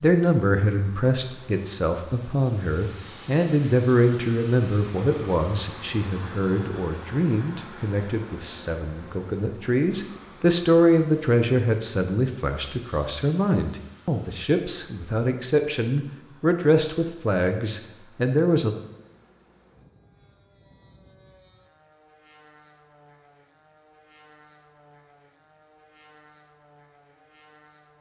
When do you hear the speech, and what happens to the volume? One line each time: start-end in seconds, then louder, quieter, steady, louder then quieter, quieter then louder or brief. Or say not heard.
0.0-18.8 steady.